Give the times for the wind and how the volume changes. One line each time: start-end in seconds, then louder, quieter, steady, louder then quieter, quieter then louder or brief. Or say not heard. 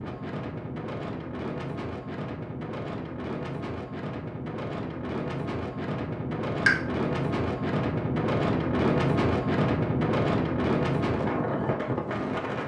0.0-12.6 louder.